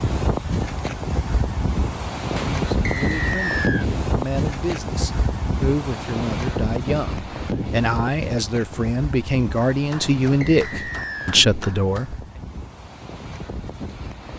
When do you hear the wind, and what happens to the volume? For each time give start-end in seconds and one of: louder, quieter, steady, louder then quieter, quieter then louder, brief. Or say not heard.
0.0-14.3 quieter.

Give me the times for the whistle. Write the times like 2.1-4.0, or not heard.
2.9-3.9, 10.4-11.4.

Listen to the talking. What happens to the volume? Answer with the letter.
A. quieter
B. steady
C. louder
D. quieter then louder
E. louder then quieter
C.